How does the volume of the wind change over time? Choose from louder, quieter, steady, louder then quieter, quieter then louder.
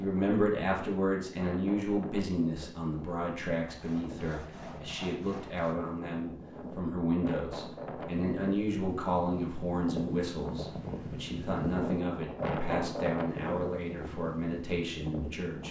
louder.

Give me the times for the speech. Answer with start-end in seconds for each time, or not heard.
0.0-15.6.